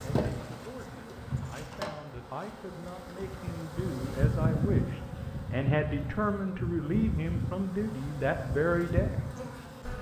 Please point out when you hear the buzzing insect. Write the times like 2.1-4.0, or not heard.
0.0-9.9.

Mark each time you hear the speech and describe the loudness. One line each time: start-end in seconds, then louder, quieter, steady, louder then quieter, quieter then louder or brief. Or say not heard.
0.0-9.2 louder.